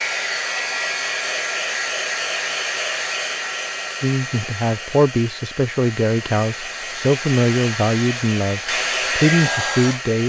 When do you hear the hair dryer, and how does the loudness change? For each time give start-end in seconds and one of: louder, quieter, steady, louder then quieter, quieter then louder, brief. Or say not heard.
0.0-10.2 quieter then louder.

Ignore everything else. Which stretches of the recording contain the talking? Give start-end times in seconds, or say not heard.
4.0-10.2.